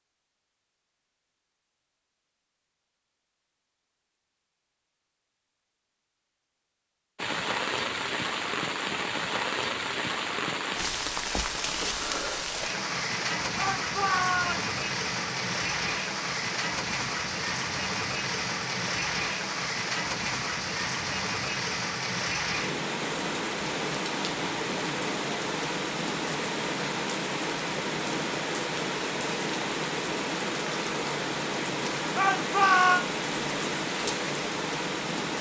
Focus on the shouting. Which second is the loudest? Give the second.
33 s.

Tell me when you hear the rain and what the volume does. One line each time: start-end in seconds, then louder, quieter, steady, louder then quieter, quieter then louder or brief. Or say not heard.
7.2-35.3 steady.